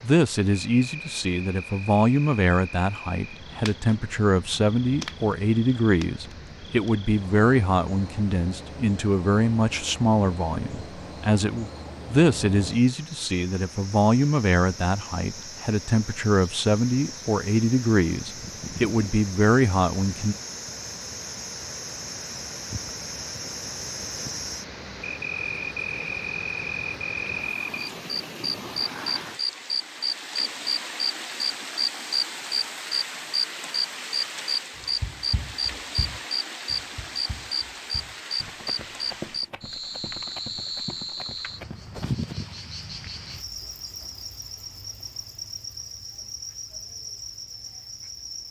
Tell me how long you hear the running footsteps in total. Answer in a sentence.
The running footsteps can be heard for 7 seconds in total.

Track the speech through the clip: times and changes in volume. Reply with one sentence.
The speech can be heard from 0.0 to 20.4 s, at a steady volume.